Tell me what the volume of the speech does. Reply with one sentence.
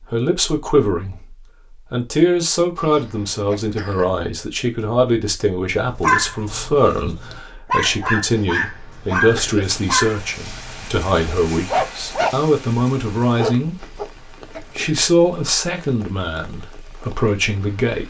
The loudness of the speech stays about the same.